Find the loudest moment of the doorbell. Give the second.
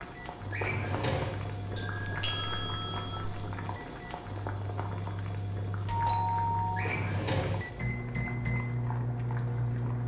6 s.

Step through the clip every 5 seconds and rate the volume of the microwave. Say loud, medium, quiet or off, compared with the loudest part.
medium, loud.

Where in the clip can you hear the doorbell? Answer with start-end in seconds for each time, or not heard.
1.8-3.2, 5.8-7.0.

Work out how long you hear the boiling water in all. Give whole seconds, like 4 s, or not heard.
10 s.